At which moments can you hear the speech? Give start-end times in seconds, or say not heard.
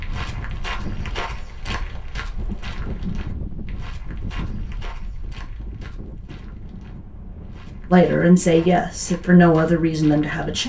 7.9-10.6.